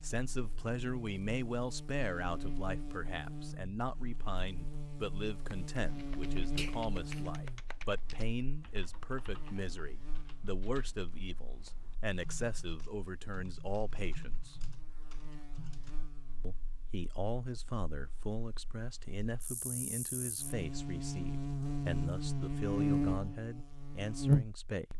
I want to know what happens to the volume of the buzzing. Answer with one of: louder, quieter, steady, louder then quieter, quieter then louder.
quieter then louder.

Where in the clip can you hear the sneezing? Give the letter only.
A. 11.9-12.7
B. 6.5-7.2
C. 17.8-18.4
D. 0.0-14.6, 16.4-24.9
B.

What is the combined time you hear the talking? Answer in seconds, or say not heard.
23 s.